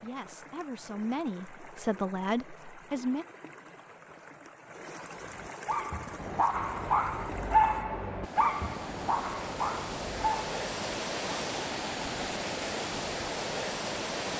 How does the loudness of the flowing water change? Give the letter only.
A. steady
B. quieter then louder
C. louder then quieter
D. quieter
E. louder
E.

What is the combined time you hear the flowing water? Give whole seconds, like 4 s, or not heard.
14 s.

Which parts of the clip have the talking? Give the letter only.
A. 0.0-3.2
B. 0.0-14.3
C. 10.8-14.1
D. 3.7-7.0
A.